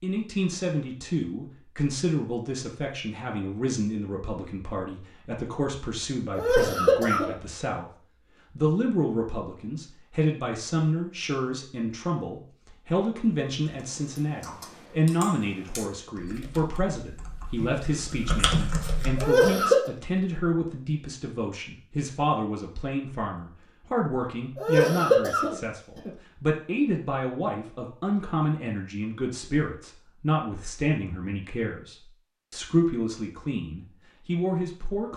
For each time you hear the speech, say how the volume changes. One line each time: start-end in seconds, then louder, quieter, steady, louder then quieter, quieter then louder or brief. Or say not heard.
0.0-35.1 steady.